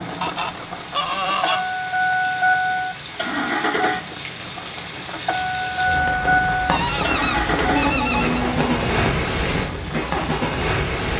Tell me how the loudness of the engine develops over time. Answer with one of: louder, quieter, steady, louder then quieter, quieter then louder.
steady.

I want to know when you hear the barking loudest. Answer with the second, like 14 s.
8 s.